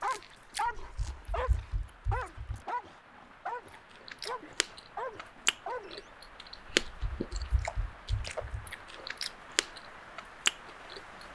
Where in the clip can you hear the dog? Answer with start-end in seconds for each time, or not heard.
0.0-6.1.